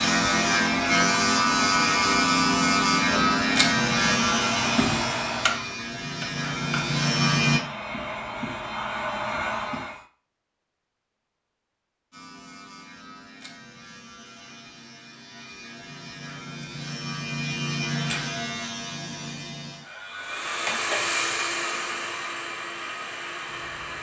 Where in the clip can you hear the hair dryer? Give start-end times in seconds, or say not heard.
0.0-10.1, 20.1-23.9.